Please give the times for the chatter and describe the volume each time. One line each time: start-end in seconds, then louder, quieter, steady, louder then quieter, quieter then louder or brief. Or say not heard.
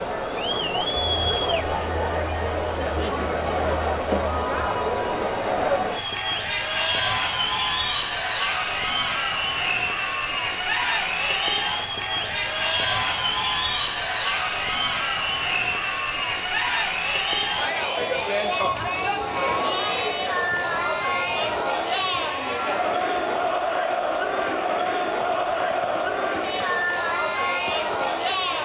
0.0-28.5 steady.